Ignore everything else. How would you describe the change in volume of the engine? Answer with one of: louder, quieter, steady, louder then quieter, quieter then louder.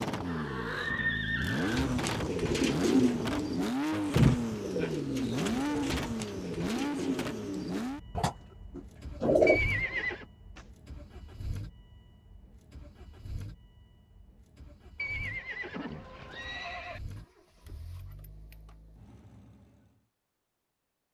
quieter.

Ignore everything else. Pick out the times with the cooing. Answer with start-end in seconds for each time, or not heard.
1.6-10.6.